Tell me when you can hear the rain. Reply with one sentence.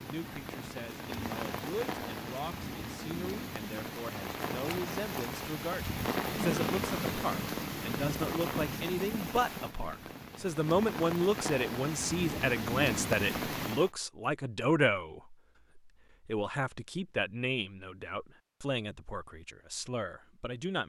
You can hear the rain from 0.0 to 13.9 s.